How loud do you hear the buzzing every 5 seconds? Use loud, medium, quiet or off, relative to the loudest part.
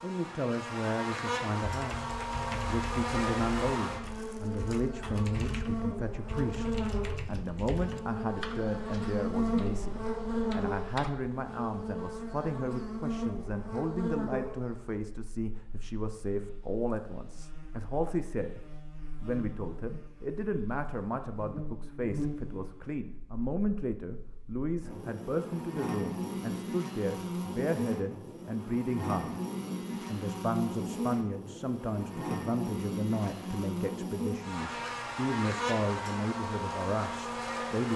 loud, loud, loud, quiet, medium, loud, loud, loud.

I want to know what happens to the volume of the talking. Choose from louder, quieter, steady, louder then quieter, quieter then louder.
steady.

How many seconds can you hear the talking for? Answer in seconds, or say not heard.
37 s.